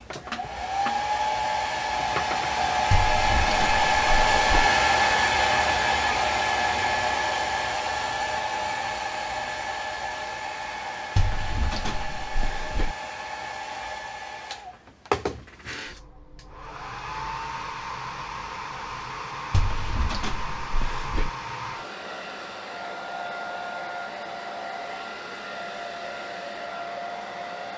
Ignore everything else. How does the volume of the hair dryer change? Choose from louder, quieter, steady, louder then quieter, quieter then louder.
quieter.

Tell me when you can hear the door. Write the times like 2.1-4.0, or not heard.
2.9-4.7, 11.2-12.9, 19.5-21.3.